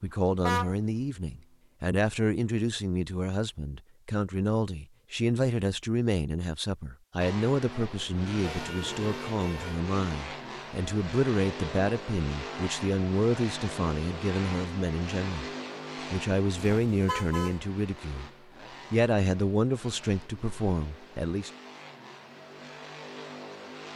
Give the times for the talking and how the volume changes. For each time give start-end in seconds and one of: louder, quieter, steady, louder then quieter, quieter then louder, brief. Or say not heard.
0.0-15.5 steady
16.1-18.3 brief
18.9-21.5 brief.